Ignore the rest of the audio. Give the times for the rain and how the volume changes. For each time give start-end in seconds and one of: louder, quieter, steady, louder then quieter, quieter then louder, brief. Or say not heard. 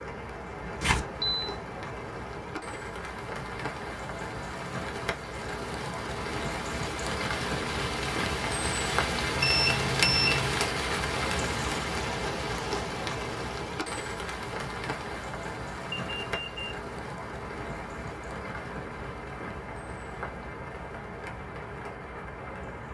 0.0-22.8 louder then quieter.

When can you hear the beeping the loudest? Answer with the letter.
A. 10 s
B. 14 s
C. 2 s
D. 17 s
A.